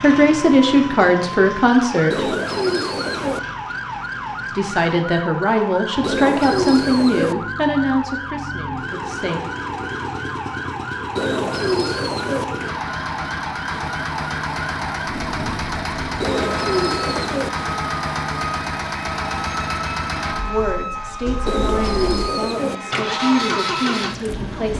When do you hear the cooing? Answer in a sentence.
You can hear the cooing from 2.1 to 3.4 s, from 6.0 to 7.3 s, from 11.2 to 12.4 s, from 16.2 to 17.5 s and from 21.4 to 22.8 s.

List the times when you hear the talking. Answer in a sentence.
You can hear the talking from 0.0 to 2.3 s, from 4.5 to 9.4 s and from 20.4 to 24.7 s.